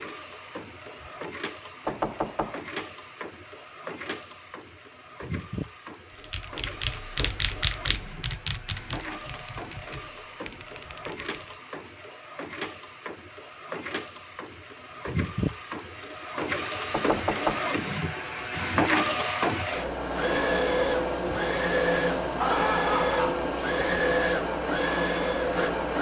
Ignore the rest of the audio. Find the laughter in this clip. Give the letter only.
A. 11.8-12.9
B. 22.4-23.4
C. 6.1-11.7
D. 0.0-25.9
B.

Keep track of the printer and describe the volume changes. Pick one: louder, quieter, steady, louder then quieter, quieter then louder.
louder.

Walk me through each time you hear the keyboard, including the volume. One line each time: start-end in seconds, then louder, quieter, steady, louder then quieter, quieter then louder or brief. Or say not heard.
6.1-11.7 quieter.